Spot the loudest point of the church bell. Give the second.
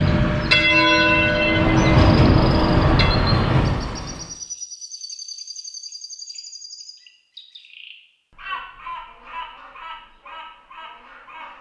1 s.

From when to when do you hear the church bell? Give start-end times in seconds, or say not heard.
0.0-3.2.